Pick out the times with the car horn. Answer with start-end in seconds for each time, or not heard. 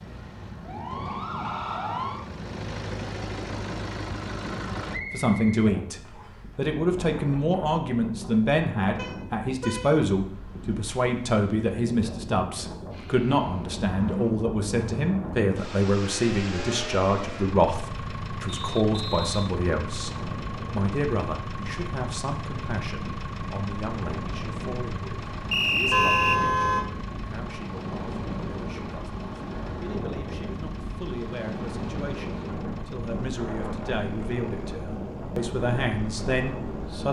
8.9-10.1, 25.9-26.9.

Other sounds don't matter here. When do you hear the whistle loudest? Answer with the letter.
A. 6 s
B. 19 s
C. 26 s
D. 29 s
C.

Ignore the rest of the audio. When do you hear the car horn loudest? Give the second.
26 s.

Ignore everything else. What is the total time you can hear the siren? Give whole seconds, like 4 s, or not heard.
2 s.